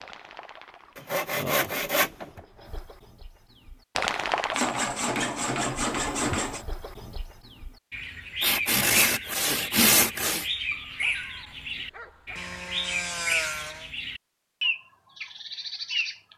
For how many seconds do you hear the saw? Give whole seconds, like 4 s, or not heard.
7 s.